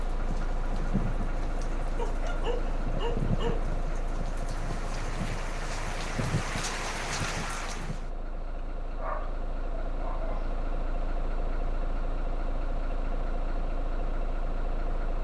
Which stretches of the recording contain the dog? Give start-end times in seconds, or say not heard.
1.9-3.6, 8.9-10.5.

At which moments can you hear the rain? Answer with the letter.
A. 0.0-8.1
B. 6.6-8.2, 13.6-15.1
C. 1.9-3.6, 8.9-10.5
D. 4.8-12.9
A.